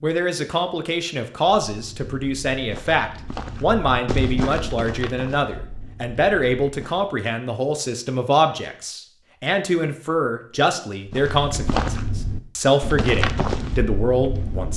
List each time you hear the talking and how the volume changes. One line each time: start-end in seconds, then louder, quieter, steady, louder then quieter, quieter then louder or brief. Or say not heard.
0.0-14.7 steady.